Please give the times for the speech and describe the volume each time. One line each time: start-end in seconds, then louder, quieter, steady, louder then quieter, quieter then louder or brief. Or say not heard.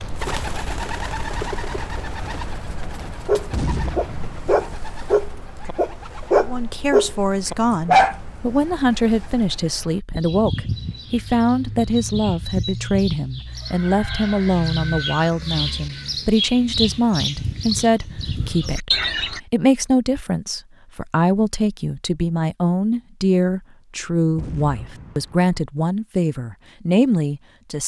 6.4-27.8 steady.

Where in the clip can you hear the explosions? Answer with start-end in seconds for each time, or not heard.
3.5-4.8, 24.4-25.6.